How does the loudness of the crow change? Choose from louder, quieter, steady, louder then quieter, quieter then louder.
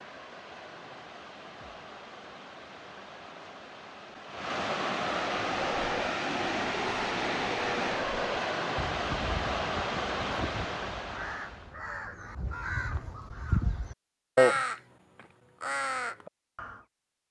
louder.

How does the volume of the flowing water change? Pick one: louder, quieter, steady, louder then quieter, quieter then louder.
louder.